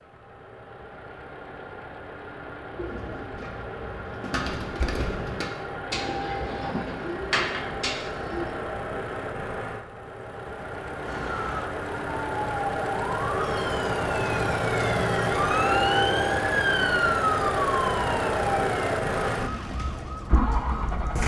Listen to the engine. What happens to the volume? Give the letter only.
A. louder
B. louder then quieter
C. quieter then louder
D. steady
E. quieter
A.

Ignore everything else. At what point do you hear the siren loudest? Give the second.
17 s.